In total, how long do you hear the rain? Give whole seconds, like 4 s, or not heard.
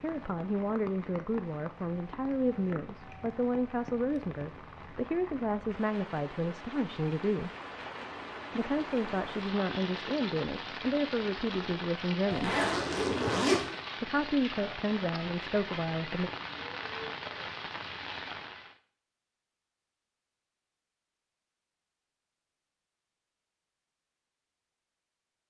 19 s.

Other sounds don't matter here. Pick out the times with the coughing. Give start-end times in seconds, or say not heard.
not heard.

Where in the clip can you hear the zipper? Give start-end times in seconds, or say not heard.
12.3-13.6.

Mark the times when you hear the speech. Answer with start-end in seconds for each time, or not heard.
0.0-7.5, 8.6-12.6, 14.0-16.3.